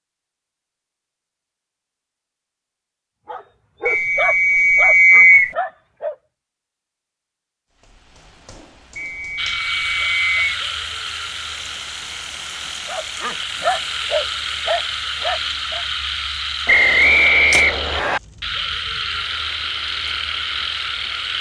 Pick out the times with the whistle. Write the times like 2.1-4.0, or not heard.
3.9-5.5, 8.9-10.6, 16.6-18.2.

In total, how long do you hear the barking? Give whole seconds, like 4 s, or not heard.
6 s.